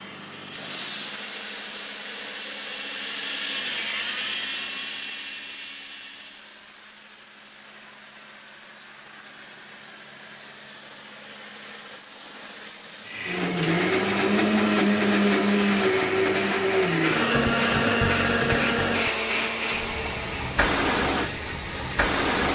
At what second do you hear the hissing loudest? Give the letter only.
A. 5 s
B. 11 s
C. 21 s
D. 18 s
C.